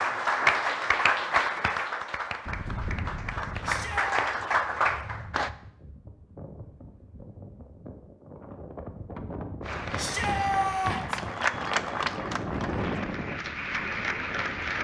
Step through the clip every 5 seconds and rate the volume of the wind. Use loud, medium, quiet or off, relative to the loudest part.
medium, medium, loud.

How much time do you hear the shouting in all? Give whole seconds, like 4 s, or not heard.
2 s.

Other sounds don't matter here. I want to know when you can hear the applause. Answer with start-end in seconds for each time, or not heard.
0.0-5.5, 9.6-14.7.